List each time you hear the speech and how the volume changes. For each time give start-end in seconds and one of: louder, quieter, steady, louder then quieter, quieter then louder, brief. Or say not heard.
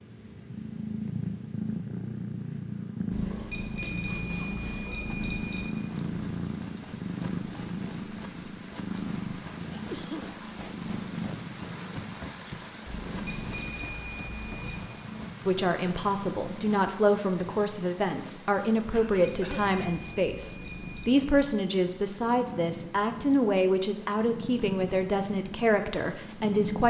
15.4-26.8 steady.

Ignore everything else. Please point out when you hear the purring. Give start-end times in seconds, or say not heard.
0.0-26.8.